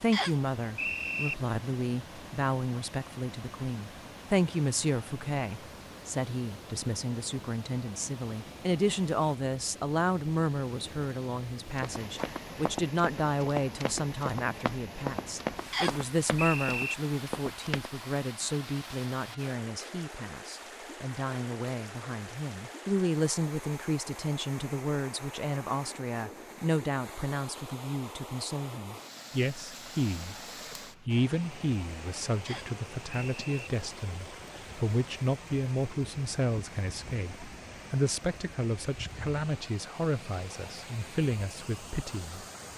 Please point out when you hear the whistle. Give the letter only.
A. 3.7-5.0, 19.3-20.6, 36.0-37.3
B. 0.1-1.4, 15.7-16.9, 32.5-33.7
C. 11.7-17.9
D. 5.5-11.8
B.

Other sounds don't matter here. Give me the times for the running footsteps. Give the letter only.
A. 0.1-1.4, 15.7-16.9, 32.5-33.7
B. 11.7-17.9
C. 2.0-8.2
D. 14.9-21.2
B.